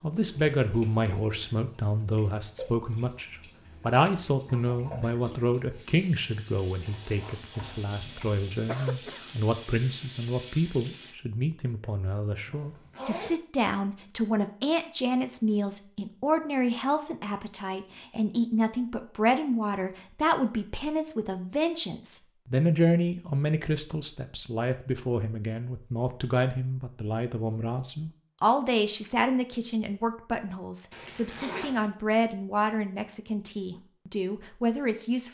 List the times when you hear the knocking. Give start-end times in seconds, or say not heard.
not heard.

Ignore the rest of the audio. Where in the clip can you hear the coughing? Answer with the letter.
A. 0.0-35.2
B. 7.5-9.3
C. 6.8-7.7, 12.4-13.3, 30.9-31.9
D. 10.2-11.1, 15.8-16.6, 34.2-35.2
B.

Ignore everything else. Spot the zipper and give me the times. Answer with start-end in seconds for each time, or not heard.
6.8-7.7, 12.4-13.3, 30.9-31.9.